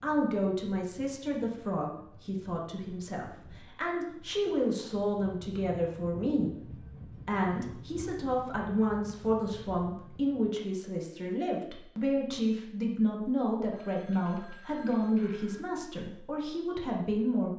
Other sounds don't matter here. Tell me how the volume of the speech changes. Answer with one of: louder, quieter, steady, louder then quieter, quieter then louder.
steady.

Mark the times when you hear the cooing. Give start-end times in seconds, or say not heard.
not heard.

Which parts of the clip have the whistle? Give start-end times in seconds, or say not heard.
not heard.